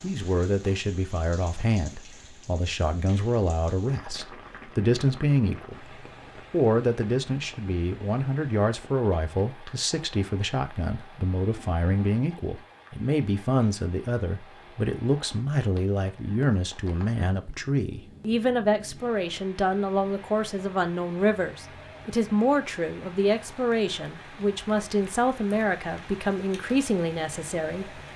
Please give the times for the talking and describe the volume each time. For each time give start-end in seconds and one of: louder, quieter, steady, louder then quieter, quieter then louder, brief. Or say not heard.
0.0-28.0 steady.